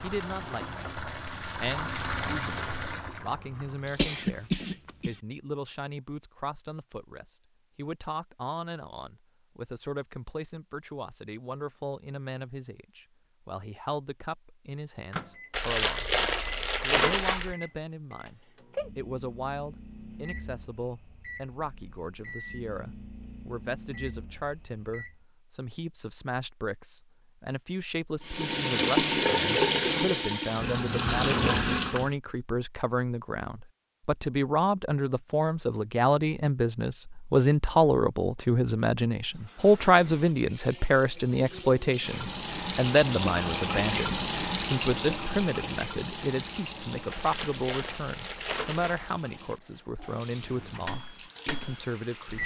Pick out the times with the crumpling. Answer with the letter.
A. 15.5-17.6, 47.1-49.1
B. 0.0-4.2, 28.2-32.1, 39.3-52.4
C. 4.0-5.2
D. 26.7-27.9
A.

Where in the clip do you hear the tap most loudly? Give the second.
29 s.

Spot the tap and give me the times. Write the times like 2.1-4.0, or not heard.
0.0-4.2, 28.2-32.1, 39.3-52.4.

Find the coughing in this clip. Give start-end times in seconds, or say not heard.
4.0-5.2.